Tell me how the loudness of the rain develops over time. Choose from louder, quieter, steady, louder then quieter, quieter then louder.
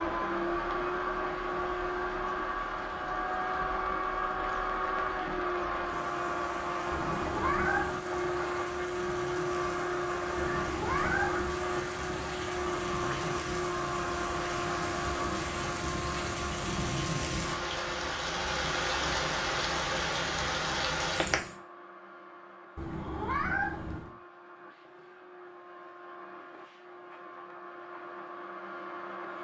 louder.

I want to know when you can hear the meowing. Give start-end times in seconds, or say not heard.
6.9-8.0, 10.3-11.6, 22.8-24.1.